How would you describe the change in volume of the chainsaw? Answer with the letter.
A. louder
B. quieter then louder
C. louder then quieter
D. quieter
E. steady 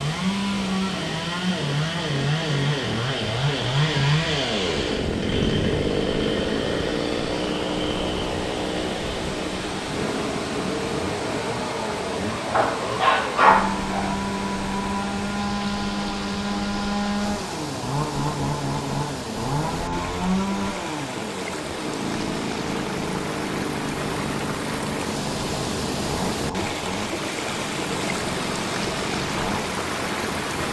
D.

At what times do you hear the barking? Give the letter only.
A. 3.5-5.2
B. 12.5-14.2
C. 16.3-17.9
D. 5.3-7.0
B.